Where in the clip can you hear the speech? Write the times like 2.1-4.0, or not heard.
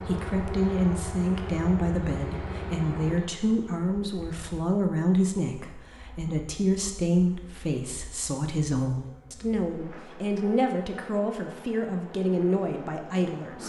0.1-13.6.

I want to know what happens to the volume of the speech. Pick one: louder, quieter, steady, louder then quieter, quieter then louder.
steady.